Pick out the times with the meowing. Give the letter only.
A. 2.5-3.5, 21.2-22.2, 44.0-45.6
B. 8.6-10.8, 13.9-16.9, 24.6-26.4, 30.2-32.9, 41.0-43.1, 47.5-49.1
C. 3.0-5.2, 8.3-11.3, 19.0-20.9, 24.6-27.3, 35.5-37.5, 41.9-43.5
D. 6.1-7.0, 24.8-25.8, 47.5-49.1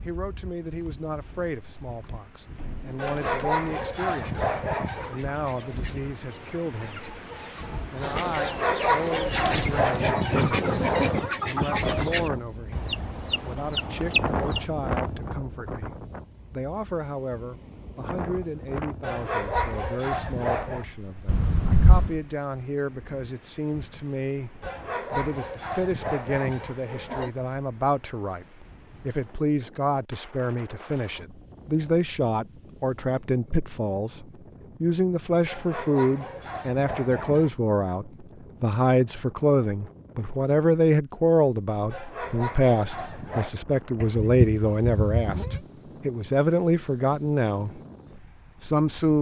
A.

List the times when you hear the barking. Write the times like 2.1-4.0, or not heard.
3.0-5.2, 8.3-11.3, 19.0-20.9, 24.6-27.3, 35.5-37.5, 41.9-43.5.